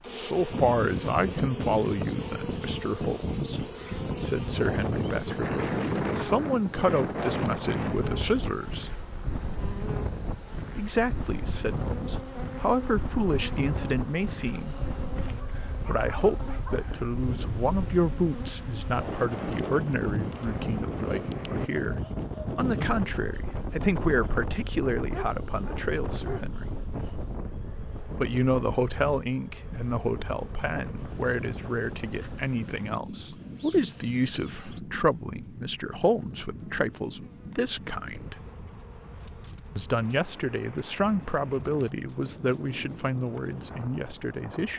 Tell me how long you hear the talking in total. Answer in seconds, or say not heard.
39 s.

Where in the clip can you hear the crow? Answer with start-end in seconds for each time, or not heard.
not heard.